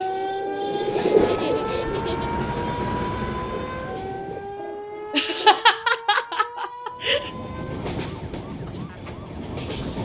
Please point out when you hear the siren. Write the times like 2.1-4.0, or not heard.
0.0-9.9.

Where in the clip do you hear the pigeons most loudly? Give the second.
1 s.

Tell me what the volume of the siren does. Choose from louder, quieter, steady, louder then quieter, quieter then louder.
quieter.